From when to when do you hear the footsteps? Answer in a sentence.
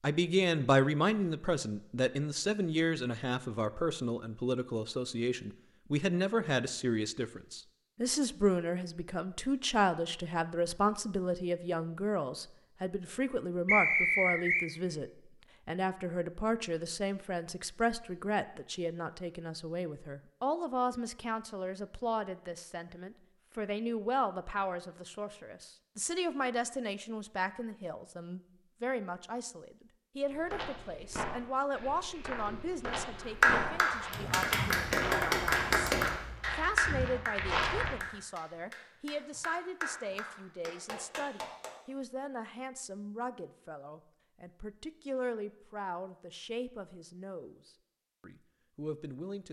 The footsteps can be heard from 30.2 to 38.0 s.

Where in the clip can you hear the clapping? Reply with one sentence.
You can hear the clapping from 33.2 to 41.7 s.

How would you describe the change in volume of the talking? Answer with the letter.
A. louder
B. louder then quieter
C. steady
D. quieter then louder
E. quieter
E.